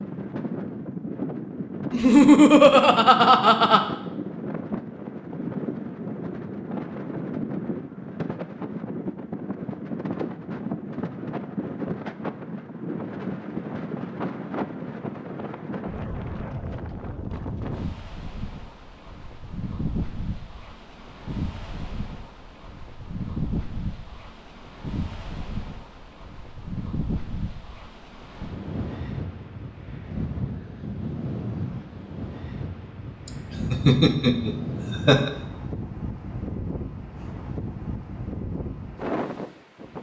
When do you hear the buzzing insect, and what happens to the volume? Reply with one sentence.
You can't hear the buzzing insect here.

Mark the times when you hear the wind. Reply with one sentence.
You can hear the wind from 0.0 to 39.9 s.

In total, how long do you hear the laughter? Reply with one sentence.
You can hear the laughter for 4 seconds altogether.